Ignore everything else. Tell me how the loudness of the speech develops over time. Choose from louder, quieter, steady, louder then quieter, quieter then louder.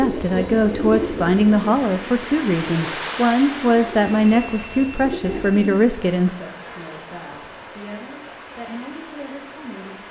quieter.